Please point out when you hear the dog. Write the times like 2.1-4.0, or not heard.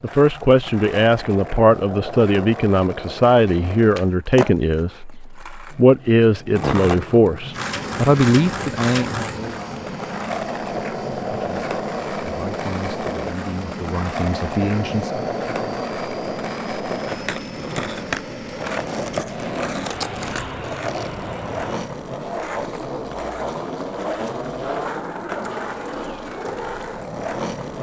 not heard.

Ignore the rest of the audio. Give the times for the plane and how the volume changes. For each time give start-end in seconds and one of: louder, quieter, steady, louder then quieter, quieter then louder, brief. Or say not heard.
7.4-21.9 steady.